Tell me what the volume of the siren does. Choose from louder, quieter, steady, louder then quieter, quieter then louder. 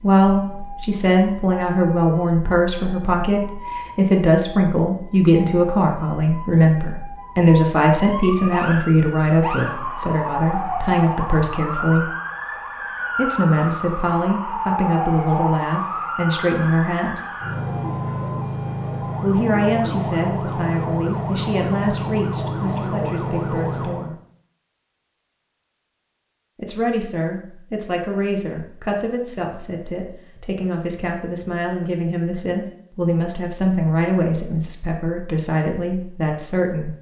louder.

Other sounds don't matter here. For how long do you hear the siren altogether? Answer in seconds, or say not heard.
24 s.